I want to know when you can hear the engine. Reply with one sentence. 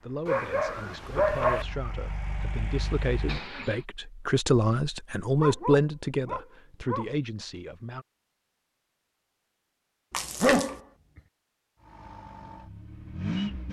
The engine can be heard from 0.0 to 3.8 s and from 11.8 to 13.6 s.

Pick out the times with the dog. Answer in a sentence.
You can hear the dog from 0.2 to 1.6 s, from 5.3 to 7.1 s and from 10.4 to 11.2 s.